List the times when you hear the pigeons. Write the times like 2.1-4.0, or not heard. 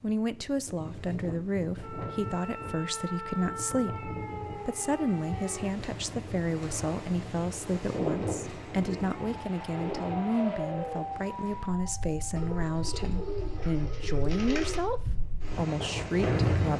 12.3-14.9.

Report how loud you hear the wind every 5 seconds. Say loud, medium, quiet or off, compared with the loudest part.
quiet, medium, quiet, loud.